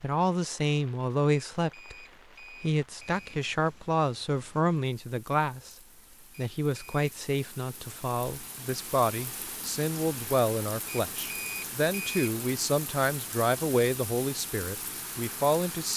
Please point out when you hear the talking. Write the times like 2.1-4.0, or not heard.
0.0-1.9, 2.6-5.8, 6.3-15.9.